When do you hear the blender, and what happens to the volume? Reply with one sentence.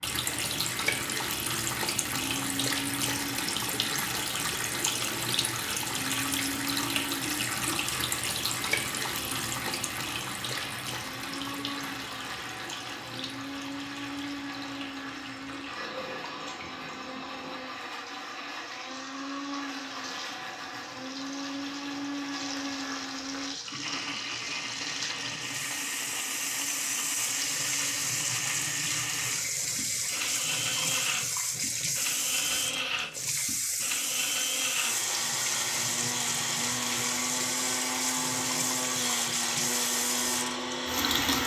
The blender can be heard from 0.1 to 41.4 s, getting louder.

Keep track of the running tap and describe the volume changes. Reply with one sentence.
The volume of the running tap goes down, then up.